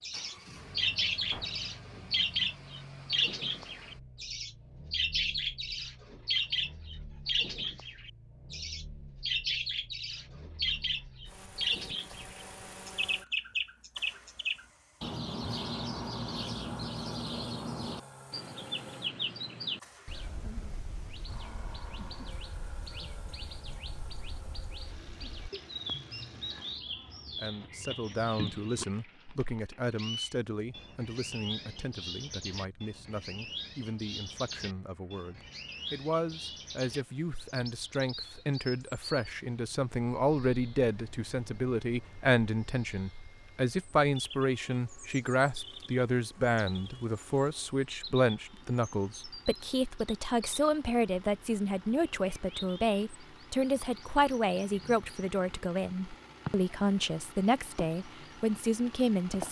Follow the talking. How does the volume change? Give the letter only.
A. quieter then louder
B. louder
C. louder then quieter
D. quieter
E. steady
B.